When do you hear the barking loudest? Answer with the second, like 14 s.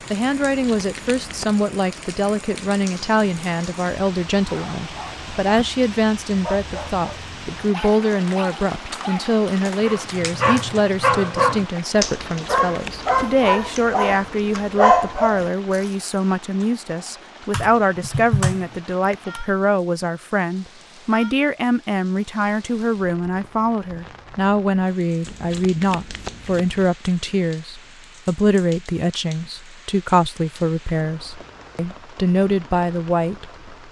15 s.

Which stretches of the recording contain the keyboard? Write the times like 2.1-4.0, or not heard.
8.1-10.8, 17.5-19.4.